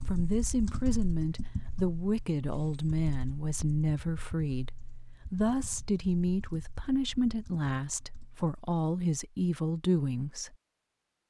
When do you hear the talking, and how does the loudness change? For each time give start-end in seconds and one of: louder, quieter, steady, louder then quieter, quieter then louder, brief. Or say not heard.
0.0-10.6 steady.